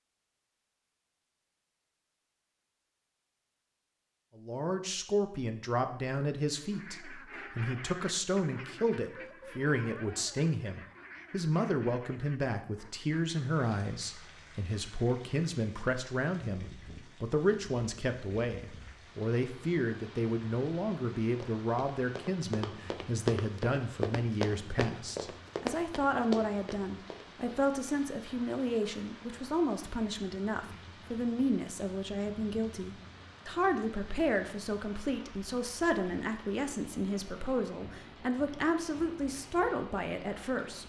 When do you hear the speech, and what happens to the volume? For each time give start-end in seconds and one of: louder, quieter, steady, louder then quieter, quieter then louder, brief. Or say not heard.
4.3-40.8 steady.